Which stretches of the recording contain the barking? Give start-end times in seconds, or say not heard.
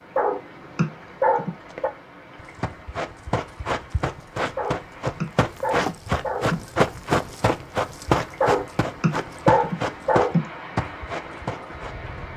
0.1-1.9, 4.5-6.7, 8.4-10.5.